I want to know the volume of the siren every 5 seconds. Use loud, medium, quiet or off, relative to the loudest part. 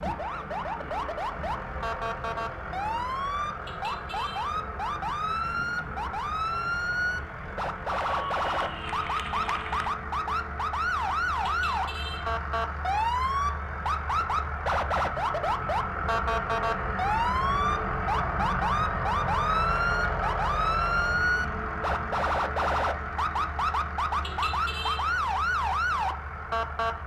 medium, loud, loud, loud, loud, loud.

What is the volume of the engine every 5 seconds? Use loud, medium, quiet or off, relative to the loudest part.
medium, medium, medium, loud, loud, medium.